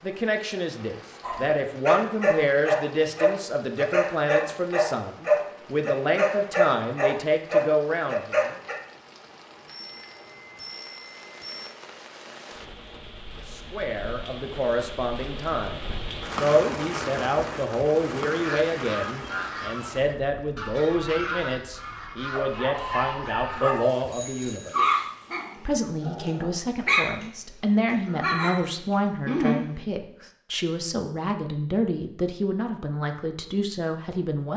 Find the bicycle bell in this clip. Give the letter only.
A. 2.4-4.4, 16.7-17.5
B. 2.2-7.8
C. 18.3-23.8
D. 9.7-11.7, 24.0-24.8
D.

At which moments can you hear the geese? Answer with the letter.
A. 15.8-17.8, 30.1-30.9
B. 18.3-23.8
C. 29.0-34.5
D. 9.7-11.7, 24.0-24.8
B.